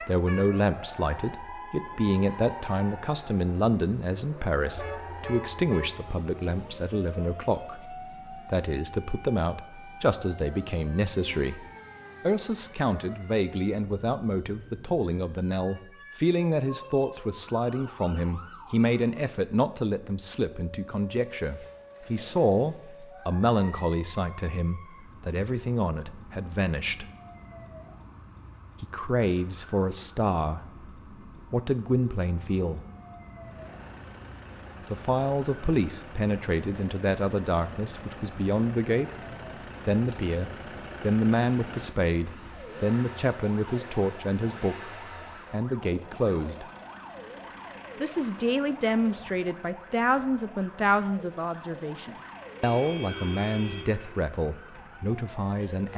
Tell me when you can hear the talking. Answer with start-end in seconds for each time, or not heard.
0.0-27.1, 28.8-30.6, 31.5-32.8, 34.9-39.1, 39.9-46.6, 48.0-55.9.